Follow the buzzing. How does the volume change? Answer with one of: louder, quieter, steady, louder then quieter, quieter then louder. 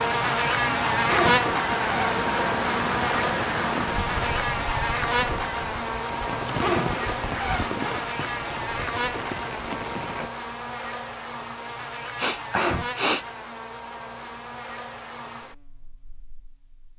quieter.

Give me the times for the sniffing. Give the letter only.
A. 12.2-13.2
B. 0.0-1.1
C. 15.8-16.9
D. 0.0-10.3
A.